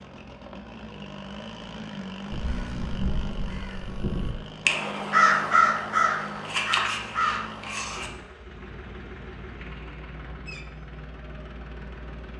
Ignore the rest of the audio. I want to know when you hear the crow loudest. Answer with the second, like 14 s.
5 s.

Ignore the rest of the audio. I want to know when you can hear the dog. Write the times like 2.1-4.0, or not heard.
not heard.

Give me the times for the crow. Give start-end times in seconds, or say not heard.
2.3-8.1.